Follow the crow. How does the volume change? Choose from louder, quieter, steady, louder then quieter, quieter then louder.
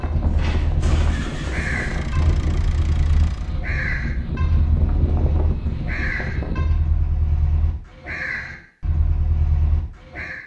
steady.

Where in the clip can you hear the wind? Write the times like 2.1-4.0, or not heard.
0.0-6.7.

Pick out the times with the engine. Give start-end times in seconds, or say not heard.
0.1-3.5.